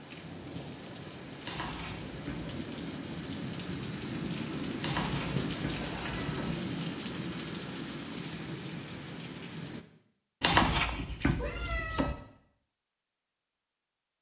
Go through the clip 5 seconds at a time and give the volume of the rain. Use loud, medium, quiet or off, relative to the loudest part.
loud, loud, off.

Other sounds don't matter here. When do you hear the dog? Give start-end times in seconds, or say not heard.
not heard.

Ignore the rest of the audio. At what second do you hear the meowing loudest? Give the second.
11 s.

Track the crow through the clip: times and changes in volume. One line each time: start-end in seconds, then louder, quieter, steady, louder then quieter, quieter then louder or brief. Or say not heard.
not heard.